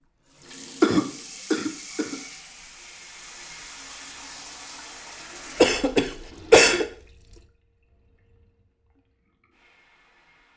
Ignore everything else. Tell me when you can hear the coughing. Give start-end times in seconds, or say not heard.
0.8-2.1, 5.6-6.8.